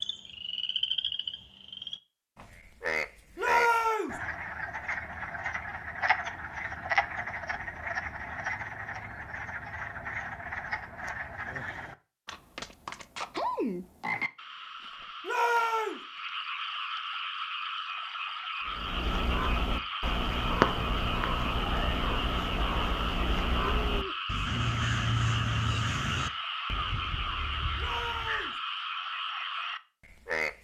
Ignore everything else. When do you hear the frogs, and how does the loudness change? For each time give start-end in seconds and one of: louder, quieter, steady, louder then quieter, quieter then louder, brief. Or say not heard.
0.0-30.5 steady.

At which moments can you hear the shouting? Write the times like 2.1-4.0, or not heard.
3.4-4.2, 15.2-16.0, 27.8-28.6.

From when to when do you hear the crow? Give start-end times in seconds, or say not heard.
18.6-28.5.